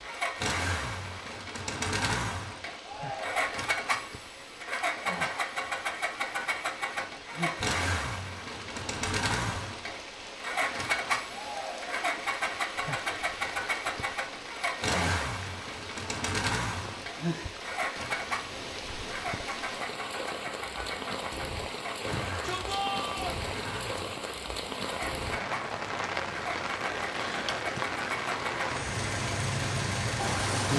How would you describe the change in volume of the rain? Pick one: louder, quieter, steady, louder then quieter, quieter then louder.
louder.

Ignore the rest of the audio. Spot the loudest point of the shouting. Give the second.
23 s.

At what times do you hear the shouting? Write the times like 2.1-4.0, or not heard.
2.8-3.5, 11.2-12.1, 22.1-23.4.